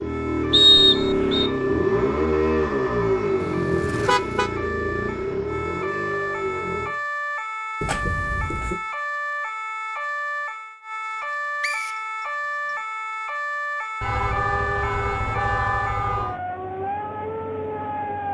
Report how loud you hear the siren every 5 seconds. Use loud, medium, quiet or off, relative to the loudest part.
medium, loud, loud, loud.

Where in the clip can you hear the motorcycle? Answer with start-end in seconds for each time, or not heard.
0.0-6.9.